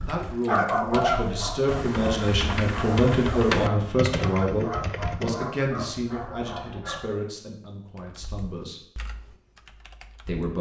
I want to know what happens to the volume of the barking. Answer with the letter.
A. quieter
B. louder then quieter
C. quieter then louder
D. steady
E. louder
A.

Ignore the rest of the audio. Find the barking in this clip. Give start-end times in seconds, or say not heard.
0.0-7.2.